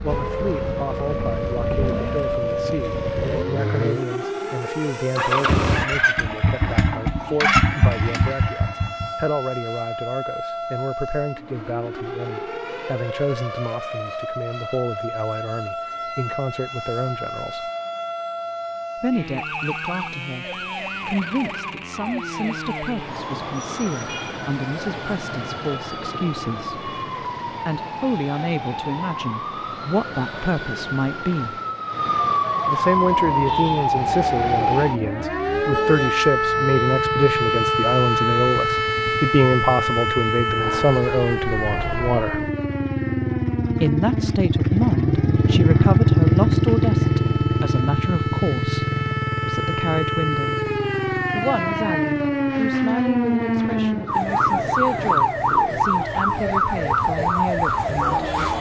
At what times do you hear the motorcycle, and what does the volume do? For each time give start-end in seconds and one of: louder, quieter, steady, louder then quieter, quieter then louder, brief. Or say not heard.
0.0-9.2 louder
33.0-58.5 louder then quieter.